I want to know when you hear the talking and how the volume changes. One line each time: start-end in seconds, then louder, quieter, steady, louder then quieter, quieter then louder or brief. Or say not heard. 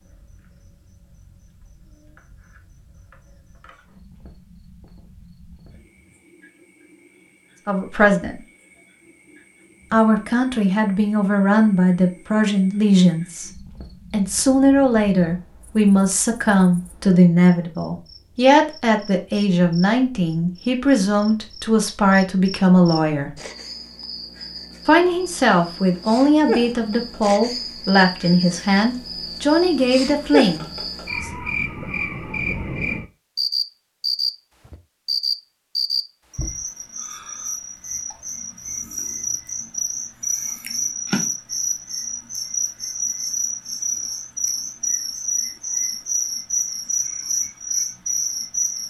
7.7-8.4 brief
9.9-23.4 steady
24.9-31.3 steady.